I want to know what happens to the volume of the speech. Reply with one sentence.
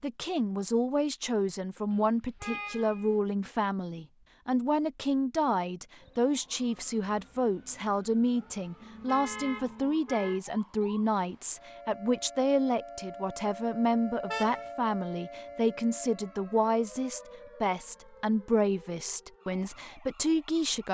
The volume of the speech stays about the same.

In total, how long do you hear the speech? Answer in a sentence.
You can hear the speech for 21 seconds altogether.